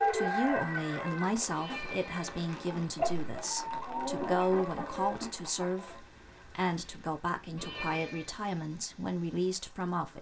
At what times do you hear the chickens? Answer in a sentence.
You can hear the chickens from 0.0 to 6.0 s.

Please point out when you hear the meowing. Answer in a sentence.
You can hear the meowing from 1.5 to 2.6 s and from 7.5 to 8.3 s.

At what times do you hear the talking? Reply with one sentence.
The talking can be heard from 0.1 to 10.1 s.